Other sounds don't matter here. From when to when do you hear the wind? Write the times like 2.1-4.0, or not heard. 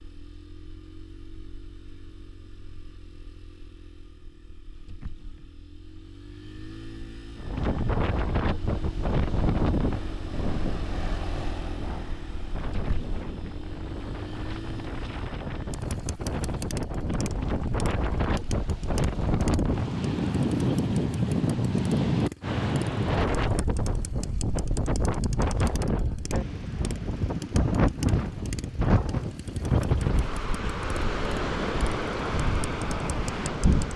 7.3-33.9.